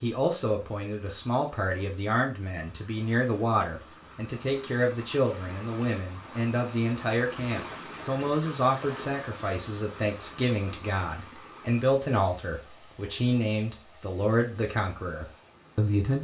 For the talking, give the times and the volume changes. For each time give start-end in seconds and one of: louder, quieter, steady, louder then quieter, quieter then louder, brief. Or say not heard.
0.0-16.1 steady.